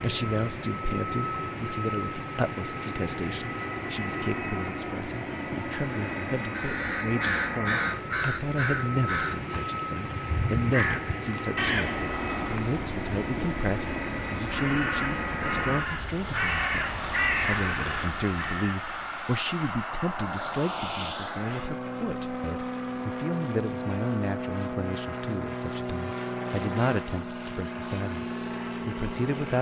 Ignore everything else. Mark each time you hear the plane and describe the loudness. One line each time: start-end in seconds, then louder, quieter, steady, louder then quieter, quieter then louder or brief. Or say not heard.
0.0-29.5 steady.